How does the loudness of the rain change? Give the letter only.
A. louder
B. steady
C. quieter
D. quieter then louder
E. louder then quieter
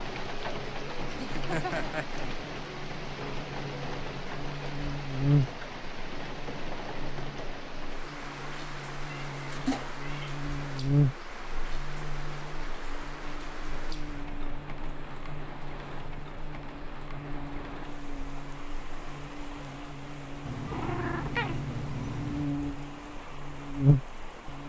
C.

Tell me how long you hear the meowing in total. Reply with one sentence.
The meowing can be heard for 4 seconds in total.